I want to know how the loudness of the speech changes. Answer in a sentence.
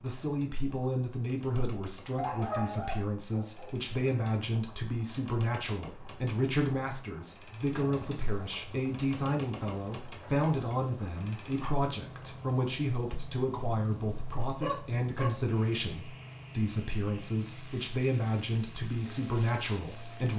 The volume of the speech stays about the same.